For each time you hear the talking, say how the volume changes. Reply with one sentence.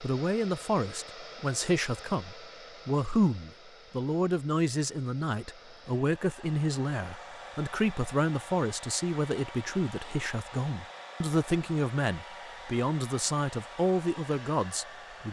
You can hear the talking from 0.0 to 15.2 s, at a steady volume.